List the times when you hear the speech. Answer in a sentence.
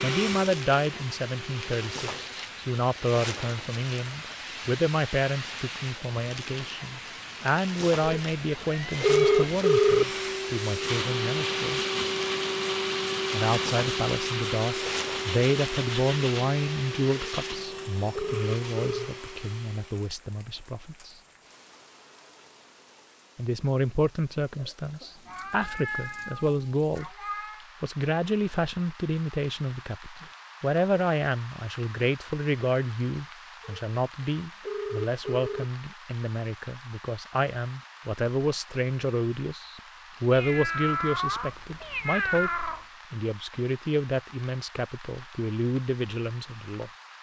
The speech can be heard from 0.0 to 11.8 s, from 13.3 to 21.1 s, from 23.4 to 27.1 s and from 27.8 to 46.9 s.